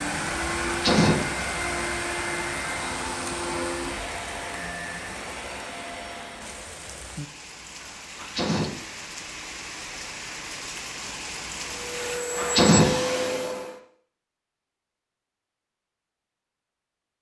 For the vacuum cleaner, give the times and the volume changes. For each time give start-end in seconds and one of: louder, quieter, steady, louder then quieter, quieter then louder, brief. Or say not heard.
0.0-6.8 quieter
11.6-13.8 brief.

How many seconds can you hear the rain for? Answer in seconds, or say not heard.
12 s.